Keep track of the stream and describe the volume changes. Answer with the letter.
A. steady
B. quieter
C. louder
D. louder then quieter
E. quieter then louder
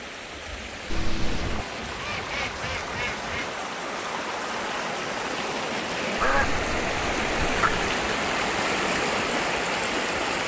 C.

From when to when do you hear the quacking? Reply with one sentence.
You can hear the quacking from 0.9 to 3.5 s and from 6.2 to 8.0 s.